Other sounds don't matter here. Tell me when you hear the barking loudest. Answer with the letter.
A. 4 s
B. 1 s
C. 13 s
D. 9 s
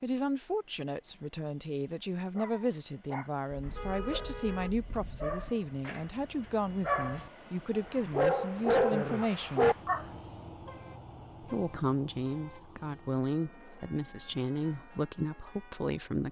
D.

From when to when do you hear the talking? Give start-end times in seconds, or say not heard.
0.0-9.7, 11.4-16.2.